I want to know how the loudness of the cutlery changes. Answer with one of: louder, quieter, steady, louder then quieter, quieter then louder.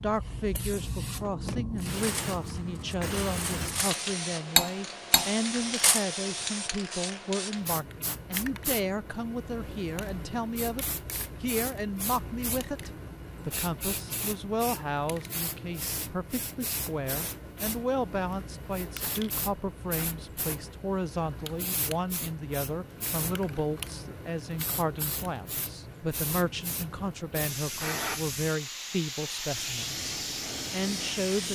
louder then quieter.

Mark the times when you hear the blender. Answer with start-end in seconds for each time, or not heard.
not heard.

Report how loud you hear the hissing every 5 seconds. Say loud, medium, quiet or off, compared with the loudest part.
loud, loud, medium, medium, medium, loud, loud.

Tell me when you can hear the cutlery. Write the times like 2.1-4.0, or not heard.
1.8-6.0.